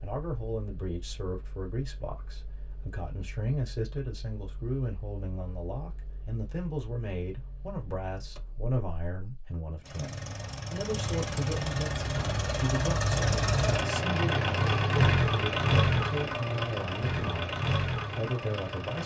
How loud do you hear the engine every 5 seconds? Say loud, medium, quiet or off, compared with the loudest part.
quiet, quiet, loud, loud.